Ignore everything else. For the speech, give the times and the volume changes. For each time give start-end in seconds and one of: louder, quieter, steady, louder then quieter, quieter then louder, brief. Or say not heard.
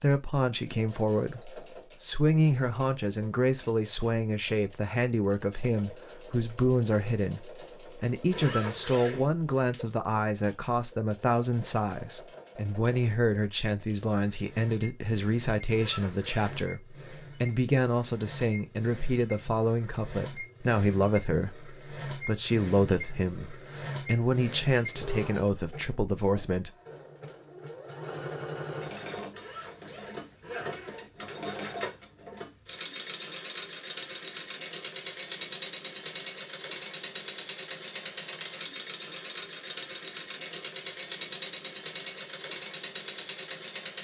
0.0-26.7 steady.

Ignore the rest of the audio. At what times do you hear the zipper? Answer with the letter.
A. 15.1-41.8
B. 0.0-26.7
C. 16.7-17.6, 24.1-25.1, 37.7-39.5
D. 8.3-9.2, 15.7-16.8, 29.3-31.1
D.